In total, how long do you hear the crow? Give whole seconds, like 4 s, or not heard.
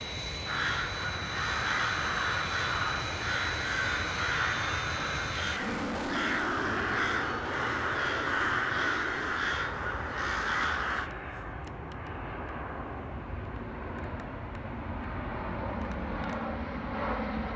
11 s.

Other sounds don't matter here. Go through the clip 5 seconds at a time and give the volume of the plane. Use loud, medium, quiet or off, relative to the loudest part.
loud, loud, medium, loud.